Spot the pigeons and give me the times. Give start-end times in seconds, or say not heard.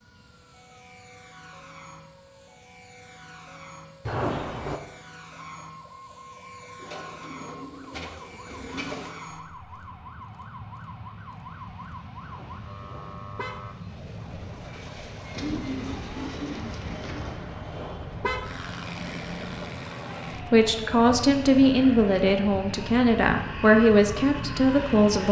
6.8-9.2, 15.3-17.4.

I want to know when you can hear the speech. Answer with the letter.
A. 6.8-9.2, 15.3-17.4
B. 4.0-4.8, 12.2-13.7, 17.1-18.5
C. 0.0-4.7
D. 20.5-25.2
D.